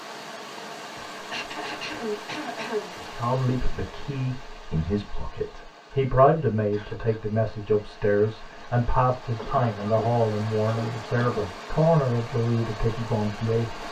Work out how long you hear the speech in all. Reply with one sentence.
The speech can be heard for 11 seconds in total.